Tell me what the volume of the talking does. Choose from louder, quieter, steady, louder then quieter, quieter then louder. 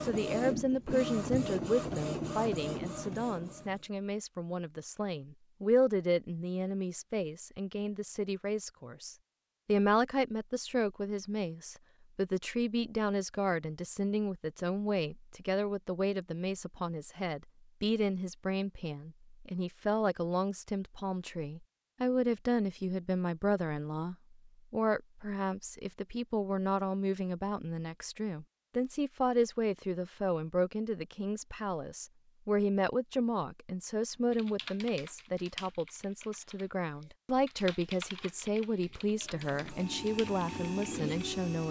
steady.